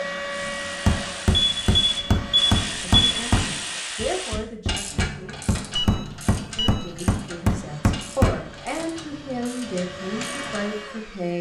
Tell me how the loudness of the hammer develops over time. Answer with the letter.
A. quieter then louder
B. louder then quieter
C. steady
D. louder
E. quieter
A.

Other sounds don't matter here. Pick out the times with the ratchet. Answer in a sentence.
The ratchet can be heard from 0.2 to 10.7 s.